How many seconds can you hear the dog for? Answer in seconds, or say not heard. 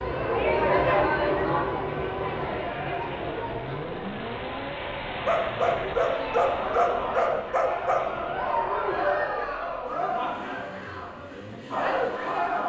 3 s.